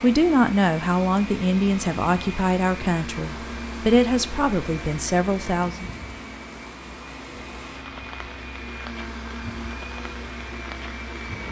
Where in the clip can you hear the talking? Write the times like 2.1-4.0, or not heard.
0.0-5.9.